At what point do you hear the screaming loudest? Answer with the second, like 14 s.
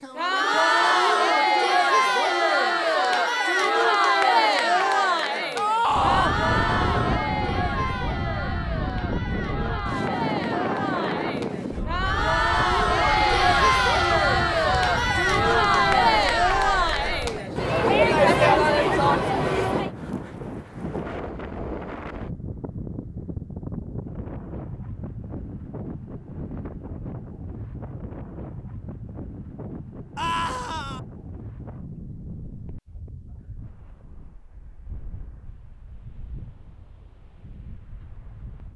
6 s.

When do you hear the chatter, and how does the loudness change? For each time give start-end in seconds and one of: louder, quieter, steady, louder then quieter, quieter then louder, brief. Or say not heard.
0.0-19.9 quieter then louder.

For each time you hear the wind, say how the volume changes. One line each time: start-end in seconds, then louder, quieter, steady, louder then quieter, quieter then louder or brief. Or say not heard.
5.8-38.7 quieter.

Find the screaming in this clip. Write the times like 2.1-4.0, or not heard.
5.5-6.3, 12.9-14.2, 30.1-31.0.